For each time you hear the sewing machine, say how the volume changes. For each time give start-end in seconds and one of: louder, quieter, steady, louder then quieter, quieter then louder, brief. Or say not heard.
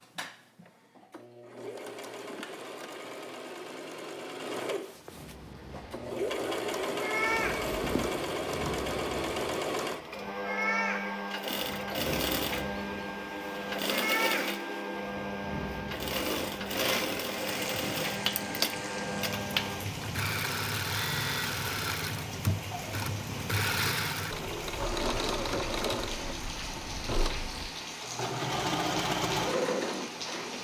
0.0-30.5 louder.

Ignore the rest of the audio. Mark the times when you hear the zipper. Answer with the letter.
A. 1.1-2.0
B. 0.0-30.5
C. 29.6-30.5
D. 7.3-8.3
D.